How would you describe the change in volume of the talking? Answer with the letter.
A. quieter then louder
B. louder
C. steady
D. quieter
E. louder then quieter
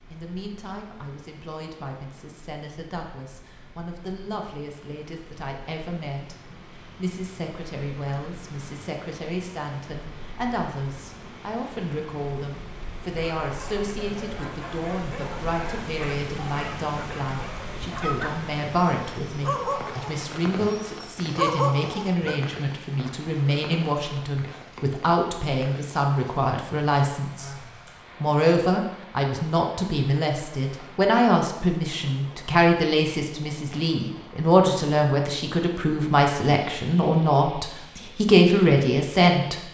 B.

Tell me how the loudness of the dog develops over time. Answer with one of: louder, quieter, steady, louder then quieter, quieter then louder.
louder.